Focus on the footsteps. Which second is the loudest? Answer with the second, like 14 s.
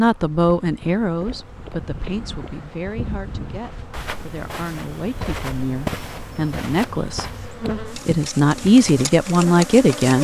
6 s.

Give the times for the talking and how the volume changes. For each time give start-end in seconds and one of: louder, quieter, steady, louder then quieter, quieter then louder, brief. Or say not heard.
0.0-10.2 quieter then louder.